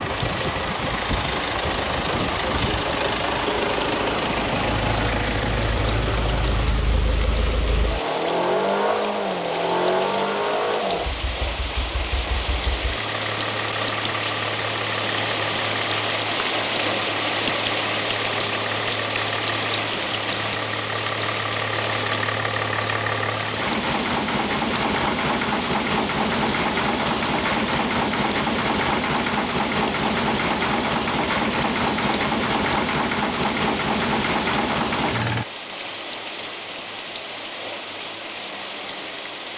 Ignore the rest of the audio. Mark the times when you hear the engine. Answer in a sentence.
You can hear the engine from 0.0 to 35.5 s.